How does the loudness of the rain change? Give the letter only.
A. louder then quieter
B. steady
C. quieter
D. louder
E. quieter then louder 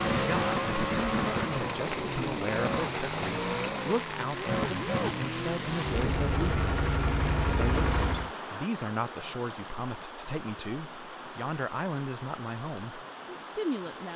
C.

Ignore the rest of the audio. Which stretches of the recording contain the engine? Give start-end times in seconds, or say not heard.
0.0-8.3.